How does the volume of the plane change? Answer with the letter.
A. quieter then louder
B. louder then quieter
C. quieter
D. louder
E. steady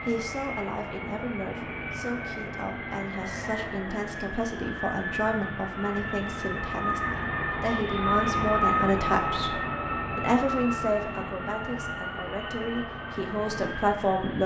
B.